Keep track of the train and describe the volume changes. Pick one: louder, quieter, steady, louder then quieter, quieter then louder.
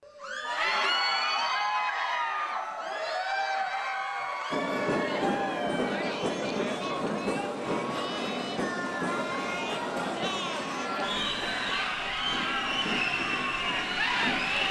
quieter.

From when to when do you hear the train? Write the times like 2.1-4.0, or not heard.
4.5-14.6.